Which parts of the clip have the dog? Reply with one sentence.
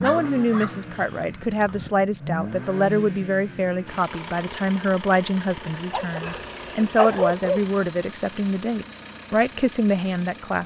You can hear the dog from 0.0 to 1.9 s and from 5.9 to 7.6 s.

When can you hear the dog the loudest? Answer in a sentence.
The loudest moment of the dog is at 7 seconds.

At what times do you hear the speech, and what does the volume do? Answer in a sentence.
The speech can be heard from 0.0 to 10.6 s, at a steady volume.